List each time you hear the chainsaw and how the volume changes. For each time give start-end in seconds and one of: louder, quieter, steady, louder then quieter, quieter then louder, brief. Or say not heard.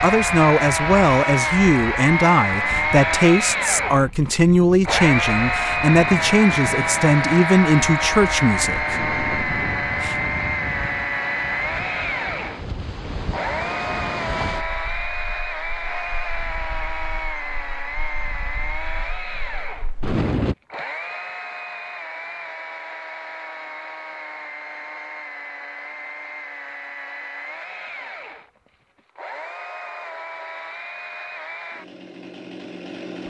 0.0-33.2 quieter.